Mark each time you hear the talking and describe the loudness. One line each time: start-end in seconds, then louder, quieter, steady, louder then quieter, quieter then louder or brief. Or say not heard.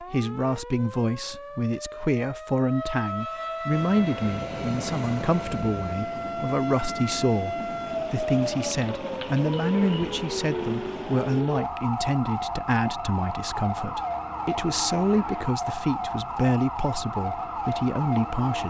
0.0-18.6 steady.